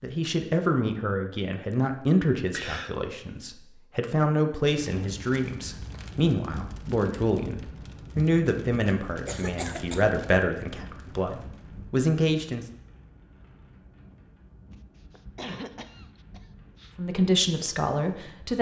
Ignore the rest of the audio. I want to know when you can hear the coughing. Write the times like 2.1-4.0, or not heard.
2.5-3.0, 9.1-10.1, 14.7-16.9.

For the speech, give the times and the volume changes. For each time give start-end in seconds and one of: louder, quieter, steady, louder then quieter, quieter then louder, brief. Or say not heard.
0.0-12.7 steady
16.9-18.5 brief.